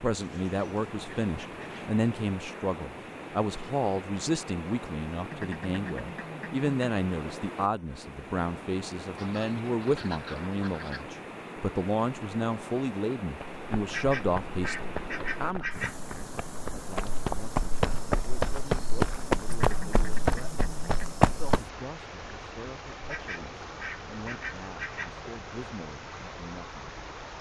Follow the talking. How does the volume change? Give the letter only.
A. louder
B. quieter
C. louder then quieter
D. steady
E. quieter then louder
B.